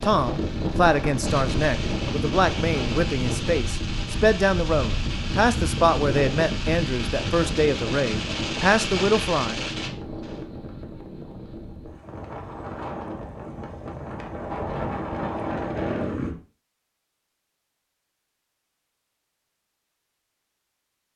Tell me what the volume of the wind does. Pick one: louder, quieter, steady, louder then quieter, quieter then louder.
quieter then louder.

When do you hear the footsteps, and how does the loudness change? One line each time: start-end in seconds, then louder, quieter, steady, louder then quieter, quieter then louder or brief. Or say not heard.
not heard.